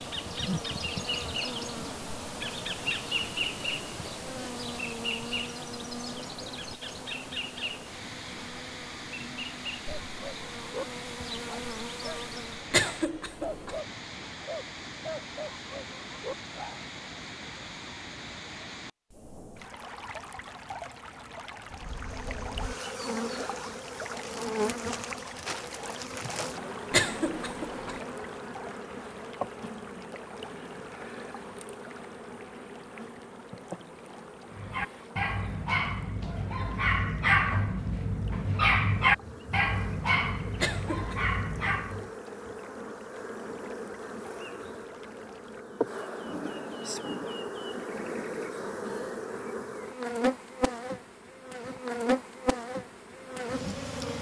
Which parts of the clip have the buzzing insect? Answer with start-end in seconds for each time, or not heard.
0.0-12.8, 21.7-54.1.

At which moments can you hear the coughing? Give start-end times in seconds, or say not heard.
12.7-13.8, 26.9-28.0, 40.6-41.1.